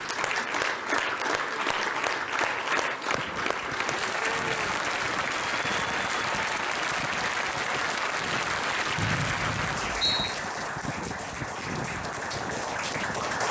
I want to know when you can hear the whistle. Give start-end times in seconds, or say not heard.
8.9-10.3.